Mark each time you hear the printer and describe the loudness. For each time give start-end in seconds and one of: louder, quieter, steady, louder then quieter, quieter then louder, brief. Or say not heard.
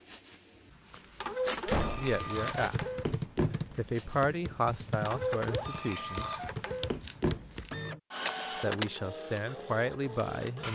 0.1-10.6 steady.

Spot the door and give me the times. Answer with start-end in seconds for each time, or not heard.
1.6-2.2.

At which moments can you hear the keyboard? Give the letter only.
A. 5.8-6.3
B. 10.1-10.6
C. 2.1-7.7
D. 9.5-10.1
C.